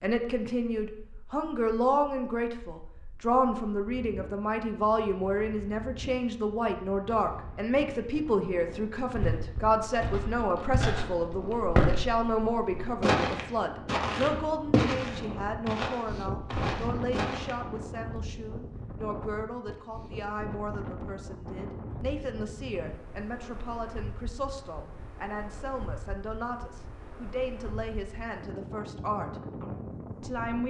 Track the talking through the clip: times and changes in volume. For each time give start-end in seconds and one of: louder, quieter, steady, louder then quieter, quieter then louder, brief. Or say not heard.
0.0-30.6 quieter.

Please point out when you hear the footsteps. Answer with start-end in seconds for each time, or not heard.
9.2-17.6.